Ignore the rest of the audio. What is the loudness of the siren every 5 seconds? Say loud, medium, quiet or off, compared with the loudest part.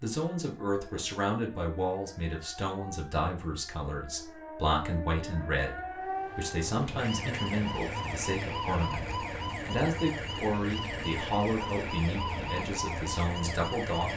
medium, loud, loud.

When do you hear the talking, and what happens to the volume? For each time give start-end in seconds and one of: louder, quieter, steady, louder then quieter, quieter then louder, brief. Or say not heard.
0.0-14.1 steady.